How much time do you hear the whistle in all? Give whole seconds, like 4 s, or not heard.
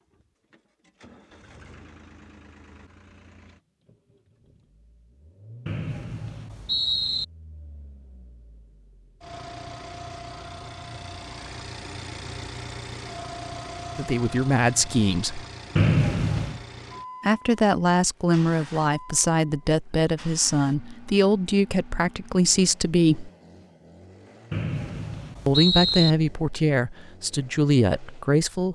4 s.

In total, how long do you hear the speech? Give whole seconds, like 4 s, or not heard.
11 s.